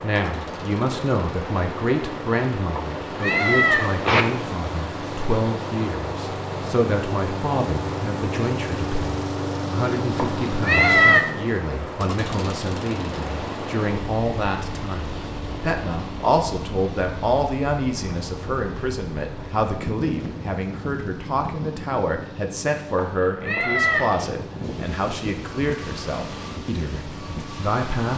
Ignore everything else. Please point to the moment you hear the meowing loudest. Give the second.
11 s.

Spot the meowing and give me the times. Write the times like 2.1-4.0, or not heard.
2.8-4.2, 10.2-11.2, 22.9-24.1.